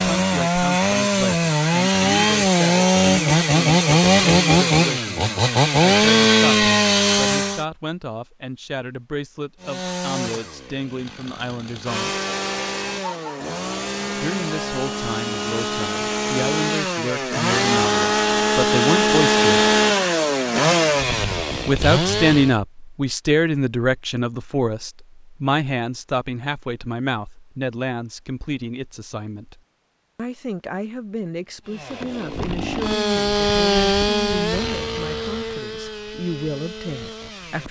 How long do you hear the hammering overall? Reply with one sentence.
The hammering can't be heard in this clip.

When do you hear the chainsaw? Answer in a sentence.
You can hear the chainsaw from 0.0 to 7.7 s, from 9.6 to 22.6 s and from 31.6 to 37.6 s.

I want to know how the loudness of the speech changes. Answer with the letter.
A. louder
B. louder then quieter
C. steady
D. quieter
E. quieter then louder
B.